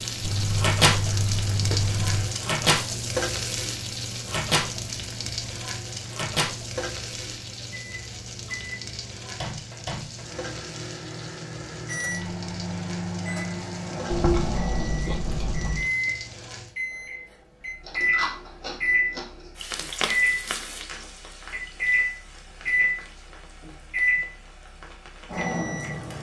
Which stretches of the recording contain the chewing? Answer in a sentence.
The chewing can be heard from 0.2 to 2.2 s, from 14.1 to 15.9 s and from 17.9 to 19.5 s.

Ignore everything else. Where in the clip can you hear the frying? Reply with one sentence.
You can hear the frying from 0.0 to 16.8 s and from 19.6 to 26.1 s.